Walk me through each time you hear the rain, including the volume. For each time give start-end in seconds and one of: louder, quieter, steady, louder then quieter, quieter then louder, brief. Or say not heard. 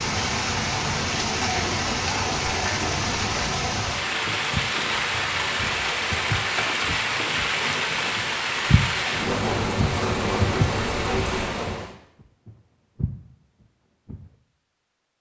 0.0-11.9 steady.